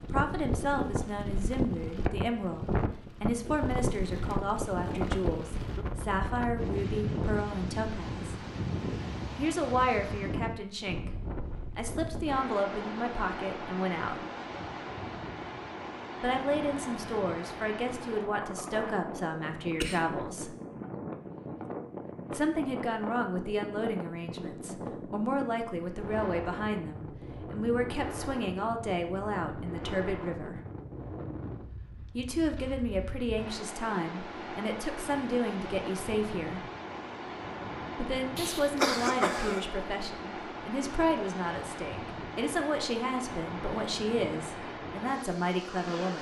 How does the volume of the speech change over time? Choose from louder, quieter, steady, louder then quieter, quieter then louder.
steady.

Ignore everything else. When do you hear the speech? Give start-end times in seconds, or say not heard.
0.0-8.3, 9.3-14.2, 16.2-20.6, 22.3-30.6, 32.1-36.6, 38.0-46.1.